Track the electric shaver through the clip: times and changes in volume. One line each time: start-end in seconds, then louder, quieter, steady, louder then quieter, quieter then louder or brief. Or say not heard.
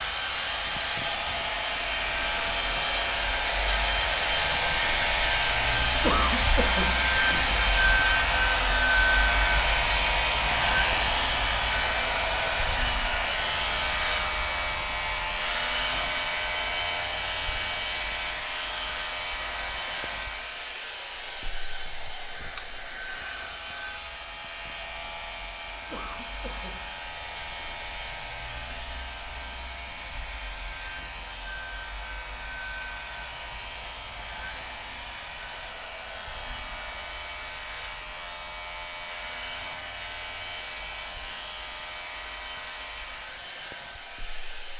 0.0-44.7 quieter.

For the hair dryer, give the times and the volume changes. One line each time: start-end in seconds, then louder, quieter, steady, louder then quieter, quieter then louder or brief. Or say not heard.
0.0-44.7 quieter.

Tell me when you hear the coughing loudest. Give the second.
6 s.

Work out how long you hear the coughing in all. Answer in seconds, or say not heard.
2 s.